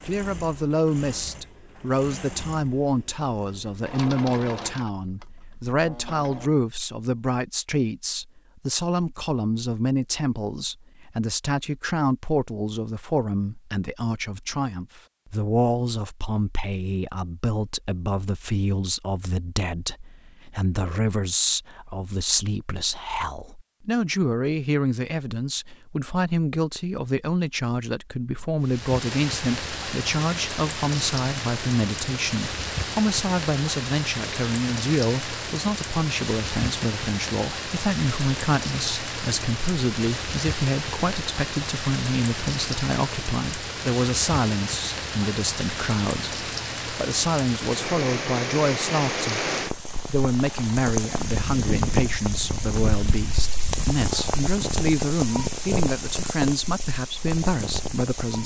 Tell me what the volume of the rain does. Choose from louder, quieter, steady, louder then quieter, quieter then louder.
steady.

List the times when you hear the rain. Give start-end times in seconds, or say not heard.
28.6-58.4.